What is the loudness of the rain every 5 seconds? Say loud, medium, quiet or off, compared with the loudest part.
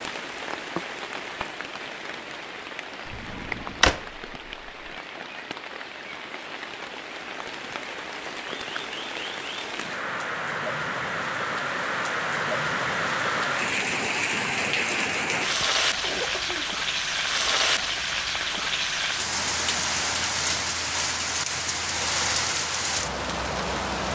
medium, medium, loud, loud, loud.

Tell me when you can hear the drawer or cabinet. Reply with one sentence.
The drawer or cabinet can be heard from 3.0 to 4.7 s.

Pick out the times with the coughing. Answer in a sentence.
The coughing can be heard from 15.4 to 16.7 s.